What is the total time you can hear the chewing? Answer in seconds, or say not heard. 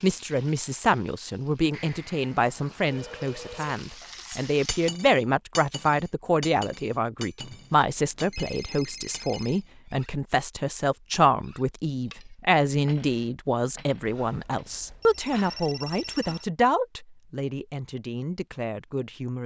not heard.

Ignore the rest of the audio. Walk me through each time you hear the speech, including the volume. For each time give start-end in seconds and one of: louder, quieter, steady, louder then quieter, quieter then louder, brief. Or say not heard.
0.0-19.4 steady.